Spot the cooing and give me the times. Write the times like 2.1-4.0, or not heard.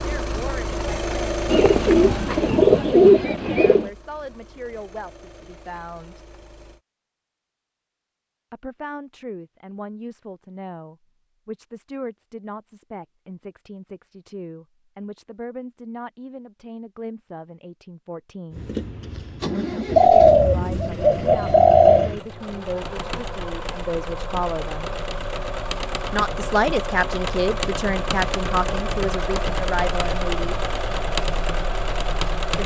1.4-3.9, 19.9-22.1.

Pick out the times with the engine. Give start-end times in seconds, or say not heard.
0.0-6.8, 18.5-32.6.